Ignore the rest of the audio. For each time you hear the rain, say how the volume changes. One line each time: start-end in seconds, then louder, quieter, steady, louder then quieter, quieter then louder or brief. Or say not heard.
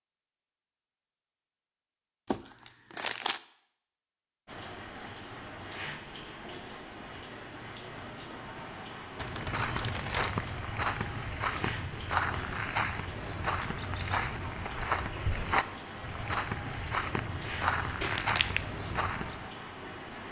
4.5-20.2 steady.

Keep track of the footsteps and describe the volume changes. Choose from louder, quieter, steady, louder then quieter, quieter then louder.
steady.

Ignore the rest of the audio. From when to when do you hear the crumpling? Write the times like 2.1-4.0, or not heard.
2.2-3.4, 9.2-10.3, 18.0-18.6.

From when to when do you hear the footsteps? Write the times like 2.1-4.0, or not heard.
9.2-19.4.